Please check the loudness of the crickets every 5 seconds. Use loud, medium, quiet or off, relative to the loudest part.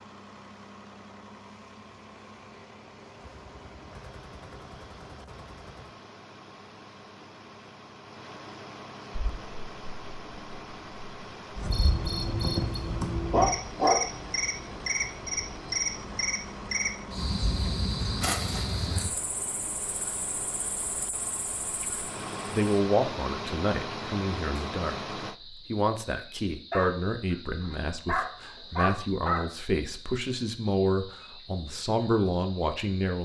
off, off, loud, loud, medium, quiet, quiet.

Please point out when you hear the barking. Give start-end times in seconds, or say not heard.
12.8-14.0, 26.7-29.4.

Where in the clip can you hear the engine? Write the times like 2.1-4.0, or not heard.
0.0-25.4.